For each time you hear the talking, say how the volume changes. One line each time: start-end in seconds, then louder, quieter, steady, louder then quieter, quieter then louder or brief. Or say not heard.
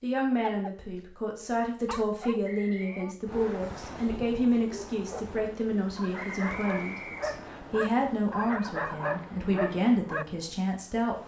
0.0-11.2 steady.